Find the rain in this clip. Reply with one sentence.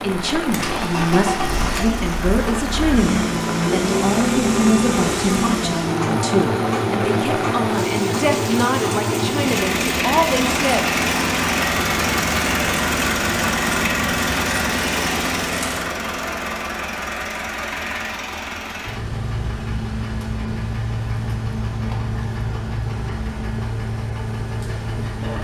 You can hear the rain from 0.0 to 15.9 s.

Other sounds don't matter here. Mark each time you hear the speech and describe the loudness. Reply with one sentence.
You can hear the speech from 0.0 to 10.9 s, at a steady volume.